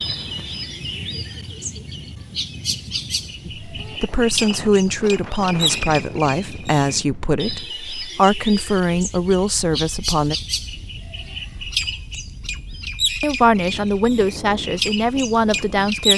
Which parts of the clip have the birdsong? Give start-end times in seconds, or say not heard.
0.0-16.1.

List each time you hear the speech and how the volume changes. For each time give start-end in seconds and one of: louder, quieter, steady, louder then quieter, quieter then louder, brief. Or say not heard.
3.5-10.3 steady
13.2-16.1 brief.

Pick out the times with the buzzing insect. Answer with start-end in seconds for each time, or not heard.
not heard.